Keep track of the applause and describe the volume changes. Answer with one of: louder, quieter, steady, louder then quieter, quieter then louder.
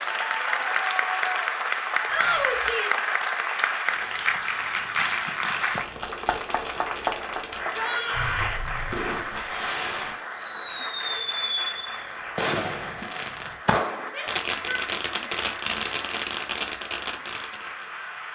quieter.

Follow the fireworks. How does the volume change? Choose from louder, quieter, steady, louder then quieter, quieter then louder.
louder.